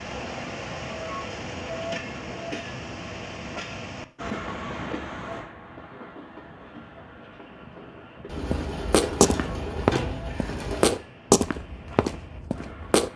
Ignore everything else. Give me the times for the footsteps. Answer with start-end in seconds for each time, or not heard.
8.3-13.1.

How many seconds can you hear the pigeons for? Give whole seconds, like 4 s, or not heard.
3 s.